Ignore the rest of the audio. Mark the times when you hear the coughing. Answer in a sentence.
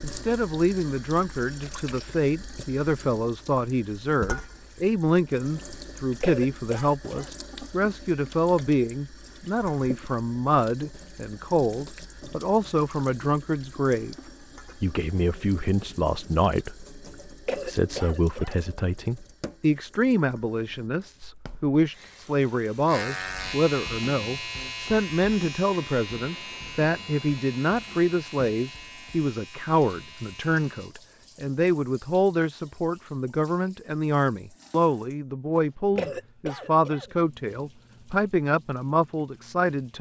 The coughing can be heard from 6.2 to 7.3 s, from 17.4 to 18.6 s and from 36.0 to 37.1 s.